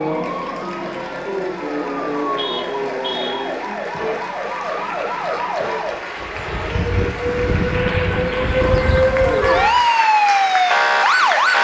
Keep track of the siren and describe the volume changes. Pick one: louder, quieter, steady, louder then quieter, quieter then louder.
louder.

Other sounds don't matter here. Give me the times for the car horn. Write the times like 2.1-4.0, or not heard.
2.4-3.5, 8.1-9.8.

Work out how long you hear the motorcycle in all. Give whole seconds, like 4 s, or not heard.
not heard.